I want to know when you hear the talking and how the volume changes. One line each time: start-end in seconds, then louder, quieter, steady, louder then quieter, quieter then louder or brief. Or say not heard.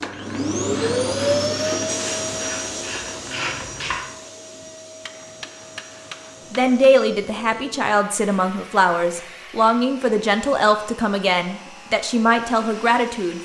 6.5-13.3 steady.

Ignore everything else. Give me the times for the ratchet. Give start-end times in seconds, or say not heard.
0.0-4.0.